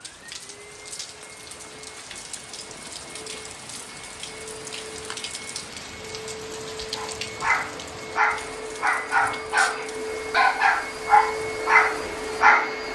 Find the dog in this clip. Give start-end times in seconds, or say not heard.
6.9-12.8.